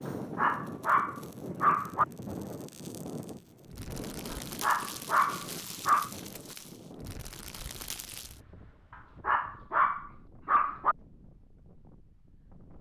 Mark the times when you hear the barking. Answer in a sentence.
The barking can be heard from 0.1 to 2.0 s, from 4.3 to 6.1 s and from 8.9 to 10.9 s.